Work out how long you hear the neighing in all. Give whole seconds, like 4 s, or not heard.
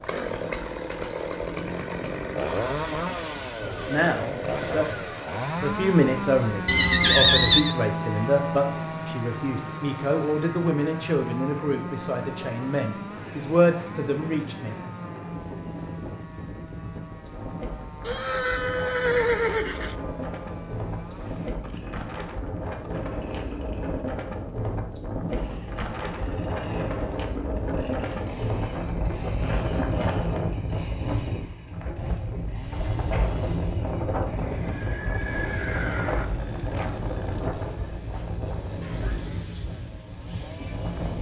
5 s.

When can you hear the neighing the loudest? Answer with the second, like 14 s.
7 s.